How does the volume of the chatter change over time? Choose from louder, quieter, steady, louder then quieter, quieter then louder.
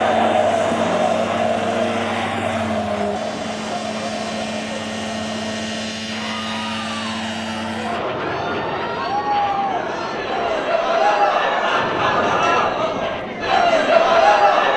quieter then louder.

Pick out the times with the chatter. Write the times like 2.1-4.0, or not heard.
0.0-14.7.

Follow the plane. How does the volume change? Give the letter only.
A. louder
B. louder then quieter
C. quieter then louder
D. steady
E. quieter
D.